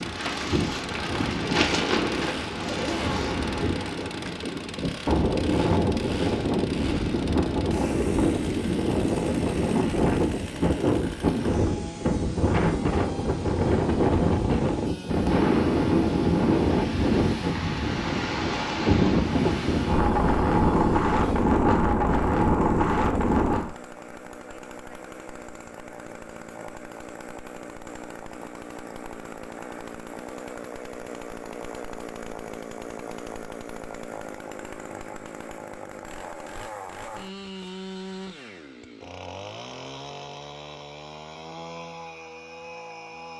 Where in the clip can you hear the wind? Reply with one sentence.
The wind can be heard from 0.0 to 23.7 s.